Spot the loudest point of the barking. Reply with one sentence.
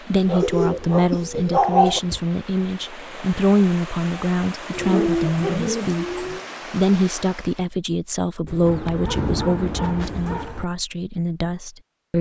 The loudest moment of the barking is at 2 seconds.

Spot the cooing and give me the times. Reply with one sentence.
The cooing can be heard from 0.4 to 2.2 s, from 4.7 to 6.5 s and from 8.4 to 10.4 s.